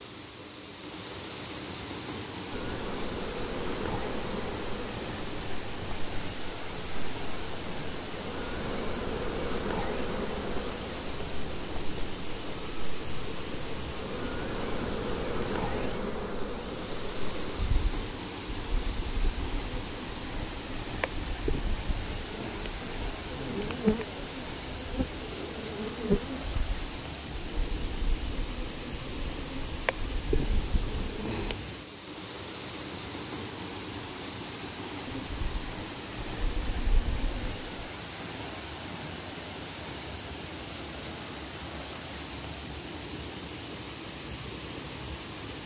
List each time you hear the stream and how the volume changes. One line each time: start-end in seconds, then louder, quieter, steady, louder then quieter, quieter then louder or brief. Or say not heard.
0.0-45.6 steady.